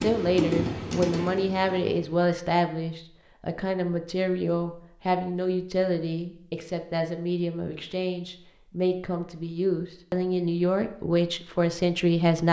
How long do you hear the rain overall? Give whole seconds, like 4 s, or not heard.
not heard.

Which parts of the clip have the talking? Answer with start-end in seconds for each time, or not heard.
0.0-12.4.